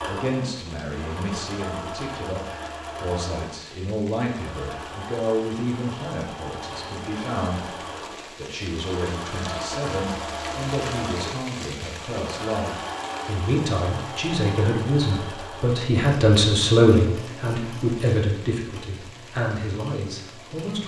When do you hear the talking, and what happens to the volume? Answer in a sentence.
The talking can be heard from 0.0 to 20.8 s, getting louder.